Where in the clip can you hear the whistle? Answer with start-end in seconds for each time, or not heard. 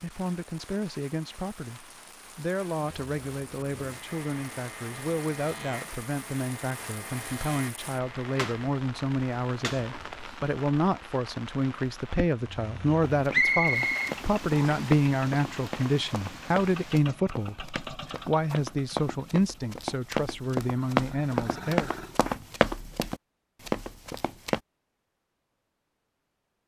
13.3-14.9.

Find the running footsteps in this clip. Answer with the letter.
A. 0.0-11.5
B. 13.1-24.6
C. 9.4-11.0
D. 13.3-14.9
B.